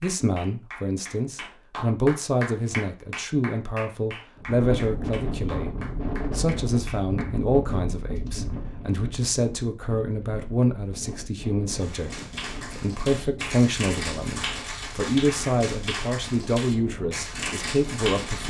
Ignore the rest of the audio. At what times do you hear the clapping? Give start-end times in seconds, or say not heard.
0.0-7.8, 11.8-18.4.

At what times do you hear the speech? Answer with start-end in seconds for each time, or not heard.
0.0-12.1, 12.7-18.4.